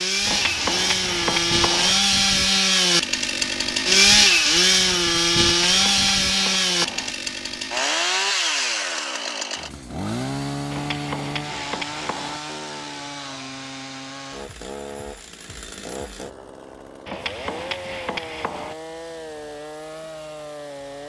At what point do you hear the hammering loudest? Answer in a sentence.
The loudest moment of the hammering is at 1 second.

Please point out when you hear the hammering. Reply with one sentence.
The hammering can be heard from 0.2 to 1.9 s, from 5.7 to 7.1 s, from 10.7 to 12.4 s and from 17.1 to 18.8 s.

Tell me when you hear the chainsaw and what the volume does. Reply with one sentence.
The chainsaw can be heard from 0.0 to 21.0 s, getting quieter.